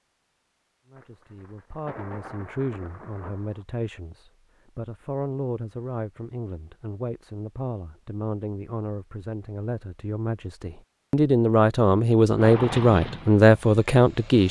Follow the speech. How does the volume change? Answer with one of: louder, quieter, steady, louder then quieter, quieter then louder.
louder.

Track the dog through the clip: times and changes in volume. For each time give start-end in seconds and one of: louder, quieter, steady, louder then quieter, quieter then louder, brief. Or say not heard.
not heard.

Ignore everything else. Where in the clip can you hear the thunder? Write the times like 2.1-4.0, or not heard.
0.9-3.6.